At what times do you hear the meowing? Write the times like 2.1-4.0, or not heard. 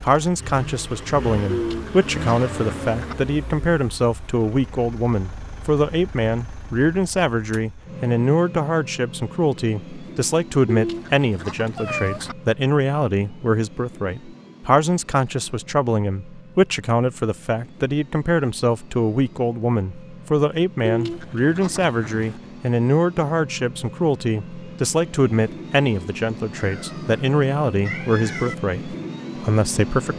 11.8-12.2, 26.6-28.6.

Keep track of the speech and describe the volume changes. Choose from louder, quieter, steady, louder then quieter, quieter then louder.
steady.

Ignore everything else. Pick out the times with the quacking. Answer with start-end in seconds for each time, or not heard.
1.5-3.1, 10.7-12.3, 20.9-22.4.